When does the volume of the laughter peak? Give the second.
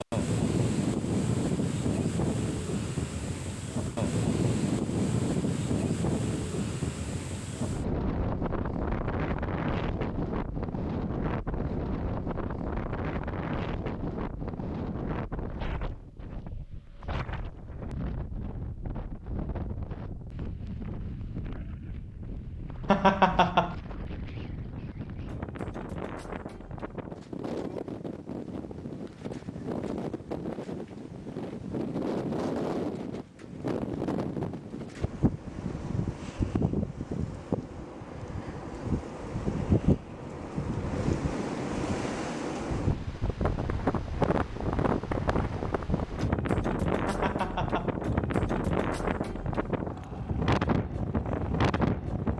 23 s.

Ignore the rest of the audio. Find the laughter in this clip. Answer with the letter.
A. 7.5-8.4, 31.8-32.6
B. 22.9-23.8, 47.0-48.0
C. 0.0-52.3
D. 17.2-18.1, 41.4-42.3
B.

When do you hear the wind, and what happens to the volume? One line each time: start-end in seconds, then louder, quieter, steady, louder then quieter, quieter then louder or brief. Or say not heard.
0.0-52.3 quieter then louder.